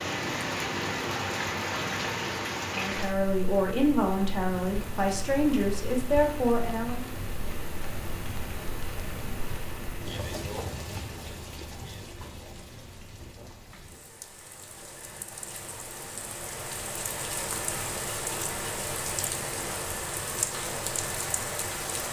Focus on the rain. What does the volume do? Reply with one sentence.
The loudness of the rain goes down, then up.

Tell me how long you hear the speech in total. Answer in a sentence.
You can hear the speech for 4 seconds altogether.